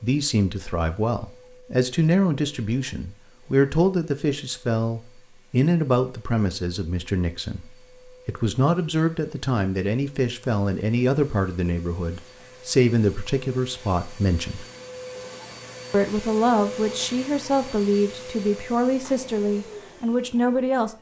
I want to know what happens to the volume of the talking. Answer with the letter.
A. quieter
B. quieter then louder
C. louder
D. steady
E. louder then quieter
D.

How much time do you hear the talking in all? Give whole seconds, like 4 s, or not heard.
20 s.